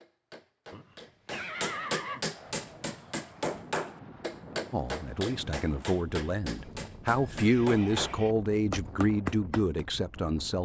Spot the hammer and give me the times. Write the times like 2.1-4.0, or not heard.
0.0-9.8.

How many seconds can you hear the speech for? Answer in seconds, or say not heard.
6 s.